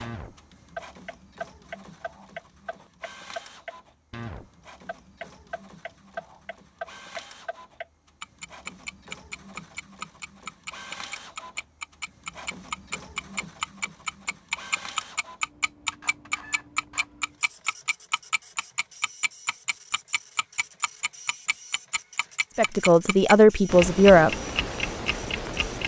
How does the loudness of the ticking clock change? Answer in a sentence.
The loudness of the ticking clock goes up.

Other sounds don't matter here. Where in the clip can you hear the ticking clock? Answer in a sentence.
You can hear the ticking clock from 0.0 to 25.8 s.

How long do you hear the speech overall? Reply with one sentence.
You can hear the speech for 2 seconds altogether.